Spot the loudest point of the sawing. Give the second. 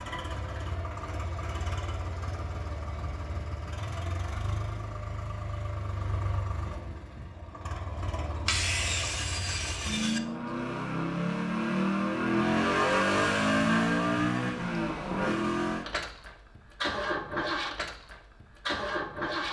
9 s.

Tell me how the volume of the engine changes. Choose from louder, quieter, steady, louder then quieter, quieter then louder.
louder then quieter.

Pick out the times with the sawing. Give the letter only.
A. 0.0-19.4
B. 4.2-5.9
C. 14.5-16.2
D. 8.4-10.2
D.